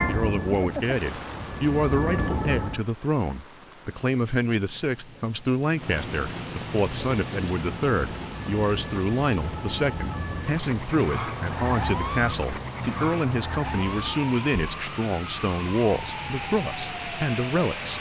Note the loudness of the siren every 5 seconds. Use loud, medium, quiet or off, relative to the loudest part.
loud, medium, loud, medium.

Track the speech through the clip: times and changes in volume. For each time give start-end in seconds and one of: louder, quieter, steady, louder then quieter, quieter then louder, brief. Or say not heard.
0.1-17.9 steady.